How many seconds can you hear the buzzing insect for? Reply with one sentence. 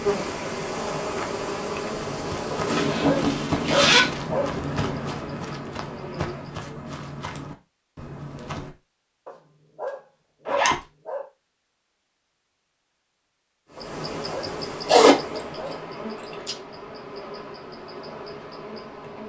The buzzing insect can be heard for 12 seconds in total.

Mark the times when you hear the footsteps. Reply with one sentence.
The footsteps can be heard from 1.9 to 8.8 s.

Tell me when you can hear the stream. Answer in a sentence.
The stream can't be heard in this clip.